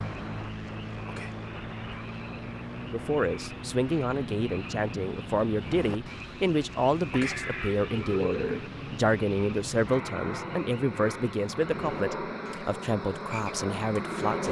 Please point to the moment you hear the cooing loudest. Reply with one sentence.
The volume of the cooing peaks at 8 seconds.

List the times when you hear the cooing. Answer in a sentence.
You can hear the cooing from 7.1 to 8.7 s.